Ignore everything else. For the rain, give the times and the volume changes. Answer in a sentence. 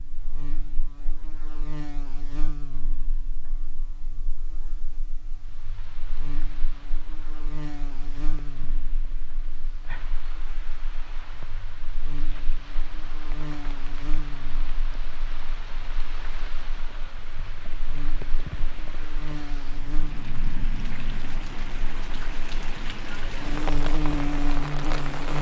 You can hear the rain from 5.3 to 25.3 s, getting louder.